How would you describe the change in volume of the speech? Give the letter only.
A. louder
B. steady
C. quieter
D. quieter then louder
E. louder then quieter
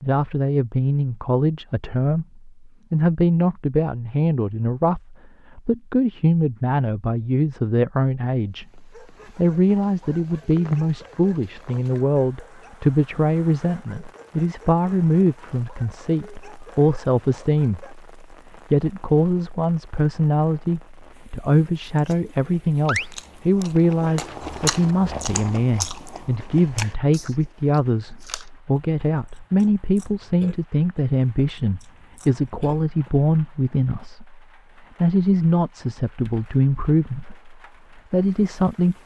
B.